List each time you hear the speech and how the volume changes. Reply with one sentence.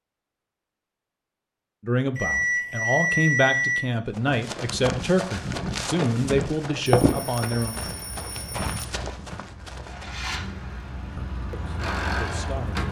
You can hear the speech from 1.8 to 7.8 s, at a steady volume; and briefly from 11.2 to 12.8 s.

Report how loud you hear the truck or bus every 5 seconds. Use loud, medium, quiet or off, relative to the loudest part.
off, quiet, loud.